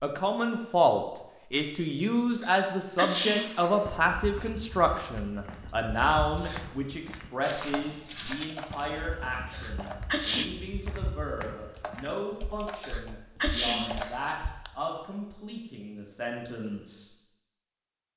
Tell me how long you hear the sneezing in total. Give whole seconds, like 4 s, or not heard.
4 s.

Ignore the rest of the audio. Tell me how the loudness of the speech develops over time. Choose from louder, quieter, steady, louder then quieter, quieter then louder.
quieter.